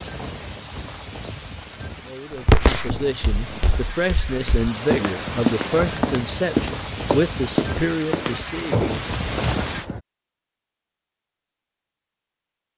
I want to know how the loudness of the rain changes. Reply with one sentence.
The volume of the rain goes up.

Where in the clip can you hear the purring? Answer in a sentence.
You can't hear the purring here.